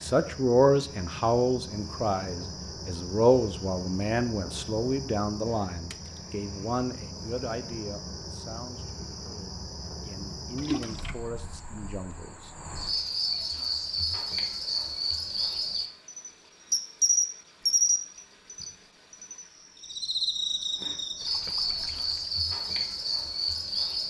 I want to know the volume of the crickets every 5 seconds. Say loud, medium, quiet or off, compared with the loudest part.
quiet, quiet, medium, loud, loud.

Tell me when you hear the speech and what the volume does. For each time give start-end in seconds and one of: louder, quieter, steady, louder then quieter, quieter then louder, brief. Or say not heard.
0.0-12.5 quieter.